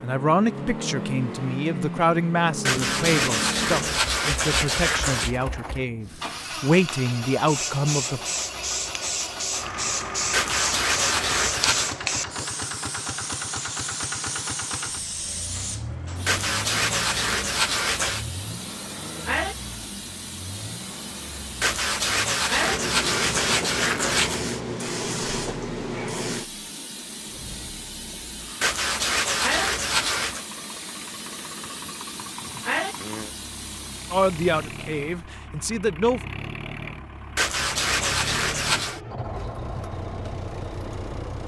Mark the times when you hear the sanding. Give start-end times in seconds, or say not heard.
2.6-5.3, 10.3-11.9, 16.2-18.2, 21.6-24.4, 28.6-30.4, 37.4-39.0.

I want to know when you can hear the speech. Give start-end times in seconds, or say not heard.
0.0-8.2, 34.1-36.2.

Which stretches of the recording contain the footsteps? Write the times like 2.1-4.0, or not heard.
not heard.